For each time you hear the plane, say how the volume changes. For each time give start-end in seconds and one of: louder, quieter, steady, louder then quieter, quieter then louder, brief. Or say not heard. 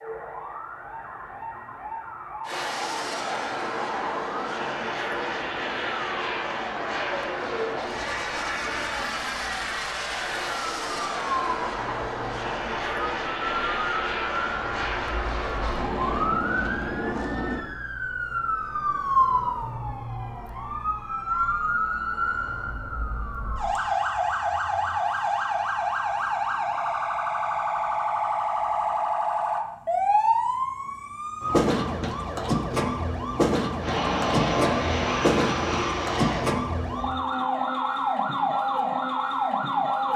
2.4-17.6 steady
33.8-36.5 brief.